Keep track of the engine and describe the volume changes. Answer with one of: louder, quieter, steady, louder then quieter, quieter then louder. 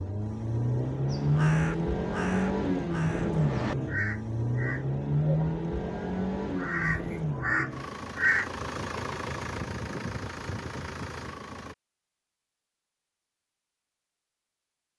quieter.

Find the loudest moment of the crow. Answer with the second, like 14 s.
8 s.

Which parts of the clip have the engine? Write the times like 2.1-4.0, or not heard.
0.0-11.8.